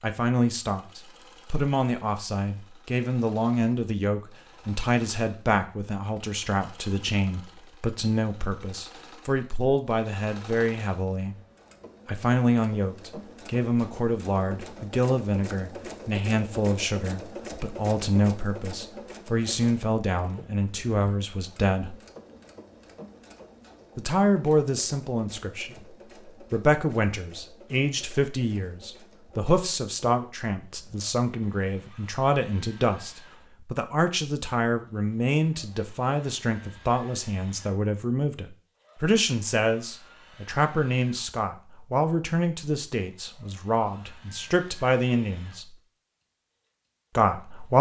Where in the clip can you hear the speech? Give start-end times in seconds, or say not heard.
0.0-11.3, 12.1-21.9, 23.9-45.8, 47.1-47.7.